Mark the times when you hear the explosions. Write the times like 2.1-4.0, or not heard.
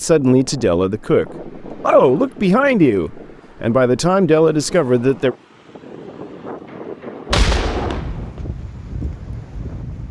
7.3-8.6.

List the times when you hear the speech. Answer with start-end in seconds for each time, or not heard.
0.0-5.3.